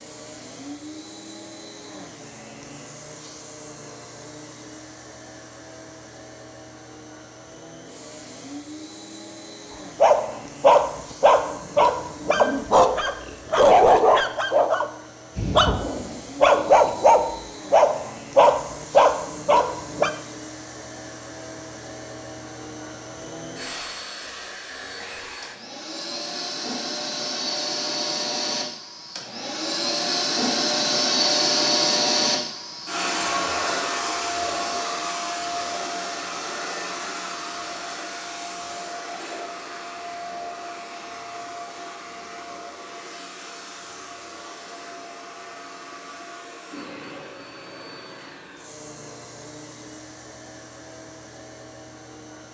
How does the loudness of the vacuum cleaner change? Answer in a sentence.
The volume of the vacuum cleaner goes up, then down.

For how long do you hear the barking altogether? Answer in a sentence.
You can hear the barking for 10 seconds altogether.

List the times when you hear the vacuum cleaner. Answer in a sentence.
You can hear the vacuum cleaner from 0.0 to 52.4 s.